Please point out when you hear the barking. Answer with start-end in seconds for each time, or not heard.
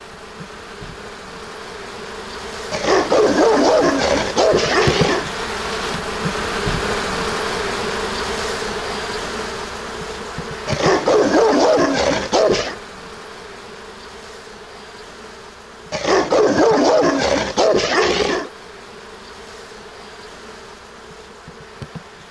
2.7-5.2, 10.7-12.8, 15.9-18.5.